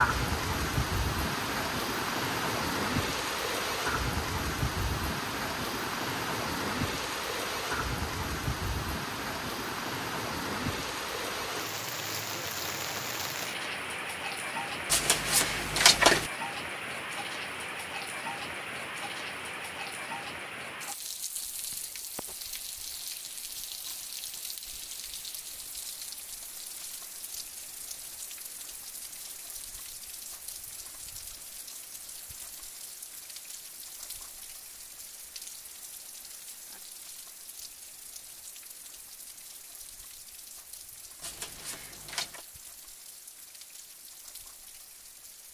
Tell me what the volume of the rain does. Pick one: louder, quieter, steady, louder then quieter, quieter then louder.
quieter.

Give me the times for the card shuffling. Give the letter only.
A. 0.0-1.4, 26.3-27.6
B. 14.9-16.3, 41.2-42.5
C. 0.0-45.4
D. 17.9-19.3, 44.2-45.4
B.